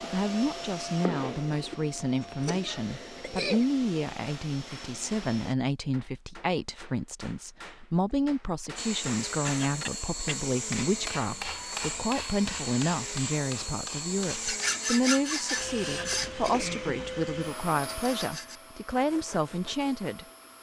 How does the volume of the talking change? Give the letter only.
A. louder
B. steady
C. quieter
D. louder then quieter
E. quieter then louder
B.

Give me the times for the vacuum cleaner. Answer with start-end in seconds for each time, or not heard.
0.0-5.5, 8.8-20.5.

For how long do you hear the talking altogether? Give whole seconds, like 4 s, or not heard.
20 s.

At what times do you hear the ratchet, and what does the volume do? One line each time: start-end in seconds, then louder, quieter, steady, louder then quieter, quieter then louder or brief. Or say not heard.
not heard.